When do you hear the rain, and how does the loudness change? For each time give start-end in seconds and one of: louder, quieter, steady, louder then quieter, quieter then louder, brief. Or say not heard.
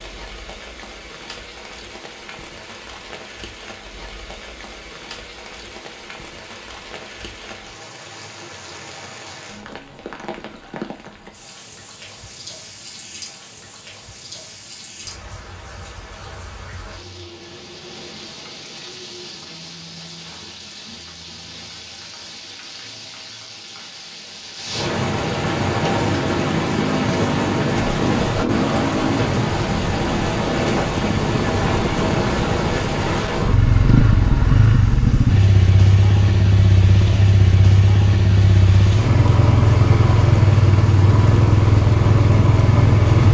0.0-43.2 louder then quieter.